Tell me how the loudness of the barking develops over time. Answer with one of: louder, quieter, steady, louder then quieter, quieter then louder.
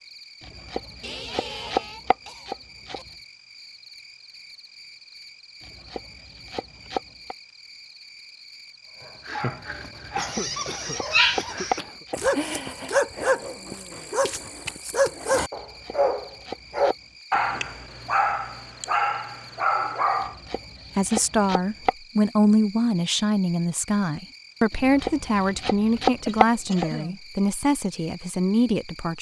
steady.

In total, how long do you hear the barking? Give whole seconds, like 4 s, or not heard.
11 s.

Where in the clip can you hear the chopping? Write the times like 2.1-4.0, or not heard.
0.4-3.0, 5.6-7.3, 10.2-12.6, 15.6-16.9, 20.2-21.9, 24.7-26.9.